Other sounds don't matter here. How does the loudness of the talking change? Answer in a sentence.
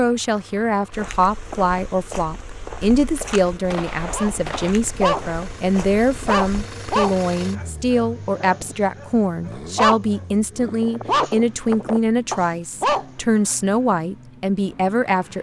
The volume of the talking stays about the same.